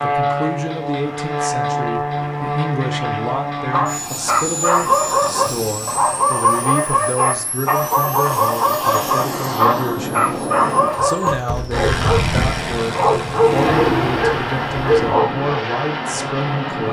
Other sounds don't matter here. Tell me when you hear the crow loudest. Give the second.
14 s.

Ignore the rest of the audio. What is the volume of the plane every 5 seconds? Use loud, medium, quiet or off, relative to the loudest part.
loud, medium, loud, loud.